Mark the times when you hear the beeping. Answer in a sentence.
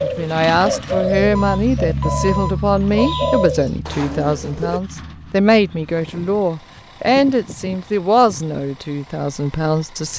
You can hear the beeping from 1.4 to 3.5 s.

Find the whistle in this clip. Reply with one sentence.
You can't hear the whistle here.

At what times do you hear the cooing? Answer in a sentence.
You can hear the cooing from 0.0 to 4.8 s.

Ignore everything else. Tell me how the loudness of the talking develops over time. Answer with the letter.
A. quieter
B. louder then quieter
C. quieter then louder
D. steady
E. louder
D.